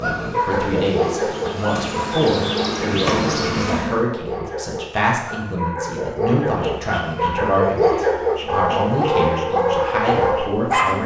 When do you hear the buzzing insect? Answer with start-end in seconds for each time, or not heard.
0.0-4.0, 6.5-11.0.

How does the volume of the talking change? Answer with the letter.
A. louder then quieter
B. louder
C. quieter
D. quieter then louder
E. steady
E.